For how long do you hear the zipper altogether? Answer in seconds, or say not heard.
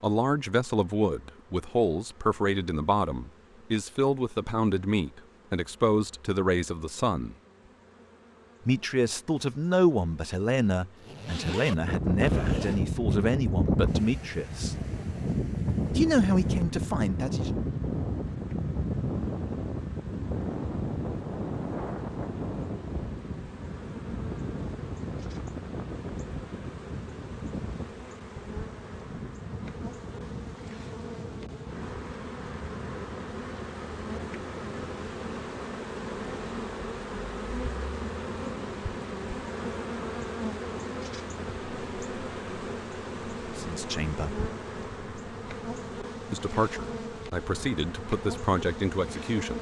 2 s.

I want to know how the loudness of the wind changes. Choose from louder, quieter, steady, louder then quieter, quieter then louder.
quieter.